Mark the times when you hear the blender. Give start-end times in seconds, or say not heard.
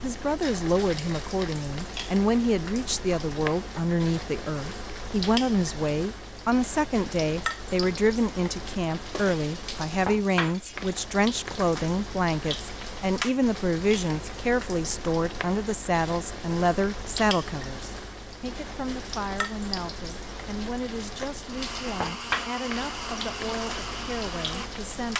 21.4-24.9.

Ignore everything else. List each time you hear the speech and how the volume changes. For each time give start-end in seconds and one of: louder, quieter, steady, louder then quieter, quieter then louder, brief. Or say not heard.
0.0-25.1 quieter.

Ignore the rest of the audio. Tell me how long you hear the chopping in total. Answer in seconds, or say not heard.
not heard.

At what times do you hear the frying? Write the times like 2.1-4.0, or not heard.
0.0-25.1.